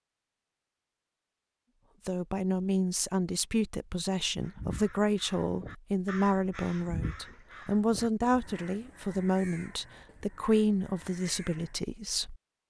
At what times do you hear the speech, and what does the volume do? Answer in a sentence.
The speech can be heard from 2.0 to 12.3 s, at a steady volume.